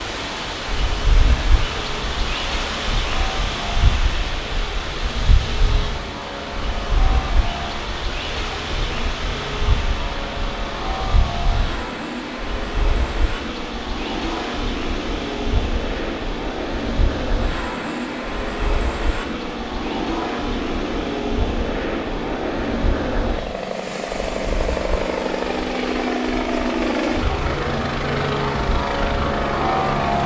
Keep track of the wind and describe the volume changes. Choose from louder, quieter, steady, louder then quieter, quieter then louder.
quieter.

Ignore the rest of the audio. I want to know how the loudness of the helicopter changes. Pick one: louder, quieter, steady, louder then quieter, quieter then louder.
louder.